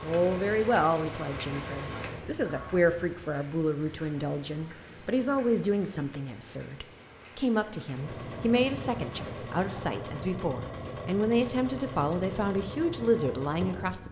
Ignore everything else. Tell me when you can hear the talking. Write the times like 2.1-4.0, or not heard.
0.0-14.0.